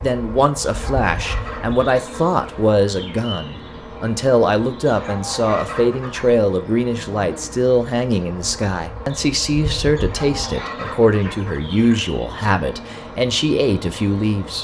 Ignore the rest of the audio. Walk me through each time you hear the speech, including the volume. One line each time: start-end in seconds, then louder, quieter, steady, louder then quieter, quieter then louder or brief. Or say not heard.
0.0-14.5 steady.